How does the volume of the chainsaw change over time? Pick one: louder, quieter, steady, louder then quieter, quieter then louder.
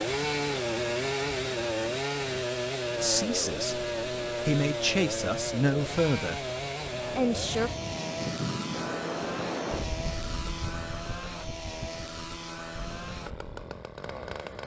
quieter.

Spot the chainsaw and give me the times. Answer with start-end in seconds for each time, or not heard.
0.0-14.6.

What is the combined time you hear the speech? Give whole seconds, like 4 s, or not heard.
4 s.